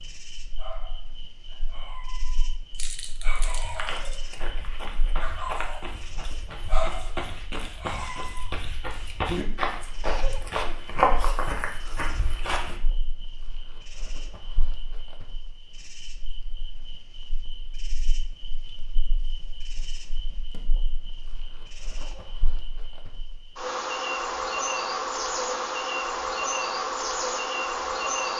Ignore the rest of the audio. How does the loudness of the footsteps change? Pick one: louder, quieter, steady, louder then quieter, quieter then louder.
louder.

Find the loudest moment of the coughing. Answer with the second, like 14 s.
10 s.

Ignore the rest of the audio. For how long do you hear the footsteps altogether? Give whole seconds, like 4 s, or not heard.
9 s.